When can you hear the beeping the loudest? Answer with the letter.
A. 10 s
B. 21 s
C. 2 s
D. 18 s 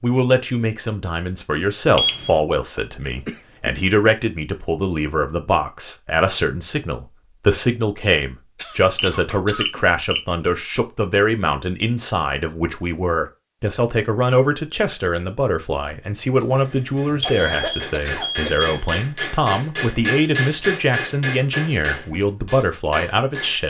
C.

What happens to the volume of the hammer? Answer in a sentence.
The loudness of the hammer goes up, then down.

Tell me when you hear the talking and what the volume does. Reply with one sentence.
You can hear the talking from 0.0 to 23.6 s, at a steady volume.